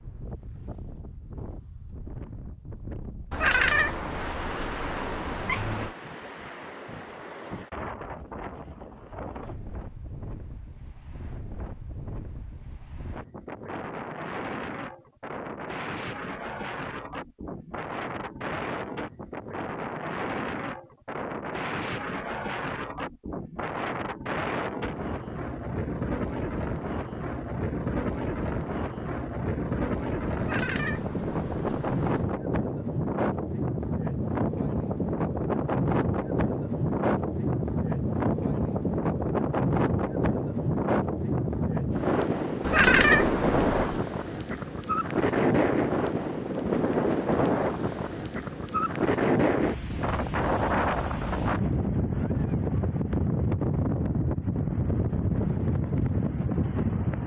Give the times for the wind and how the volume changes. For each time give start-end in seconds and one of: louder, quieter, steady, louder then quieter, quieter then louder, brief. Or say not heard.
0.0-57.2 louder.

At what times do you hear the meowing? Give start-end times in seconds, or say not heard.
3.3-6.0, 30.4-32.3, 42.6-44.0.